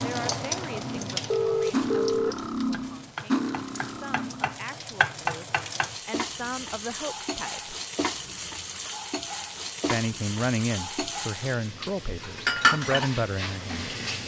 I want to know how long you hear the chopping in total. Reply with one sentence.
The chopping can't be heard in this clip.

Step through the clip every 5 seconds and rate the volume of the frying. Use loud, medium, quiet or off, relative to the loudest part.
medium, loud, loud.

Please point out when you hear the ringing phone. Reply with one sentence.
The ringing phone can be heard from 1.3 to 2.4 s.